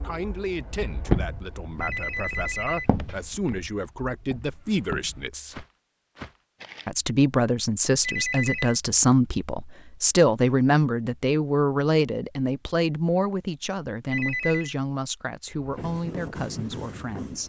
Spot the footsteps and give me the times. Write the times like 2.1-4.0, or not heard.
0.9-6.9.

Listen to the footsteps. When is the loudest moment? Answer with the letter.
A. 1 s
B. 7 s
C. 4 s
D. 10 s
A.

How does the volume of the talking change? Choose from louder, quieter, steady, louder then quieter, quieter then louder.
louder then quieter.